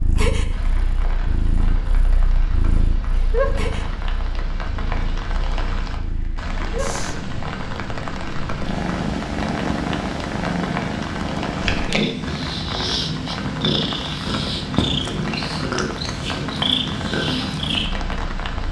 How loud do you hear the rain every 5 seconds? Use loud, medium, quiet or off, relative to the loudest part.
medium, loud, loud, loud.